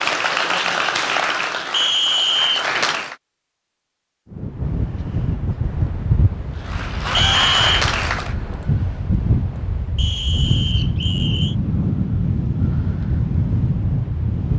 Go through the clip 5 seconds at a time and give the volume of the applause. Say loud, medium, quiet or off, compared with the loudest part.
loud, loud, off.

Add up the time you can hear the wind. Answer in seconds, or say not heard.
10 s.